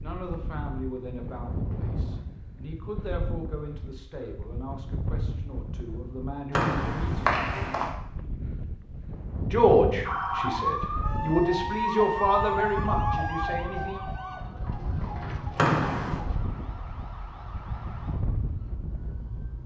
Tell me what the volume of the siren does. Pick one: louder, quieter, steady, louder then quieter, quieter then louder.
quieter.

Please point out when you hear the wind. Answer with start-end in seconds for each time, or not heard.
0.0-19.6.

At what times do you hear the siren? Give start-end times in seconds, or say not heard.
10.1-19.6.